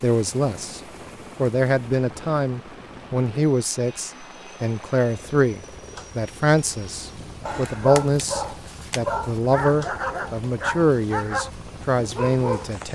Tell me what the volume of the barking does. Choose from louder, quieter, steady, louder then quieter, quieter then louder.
steady.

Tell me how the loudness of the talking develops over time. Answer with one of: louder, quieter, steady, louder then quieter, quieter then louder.
steady.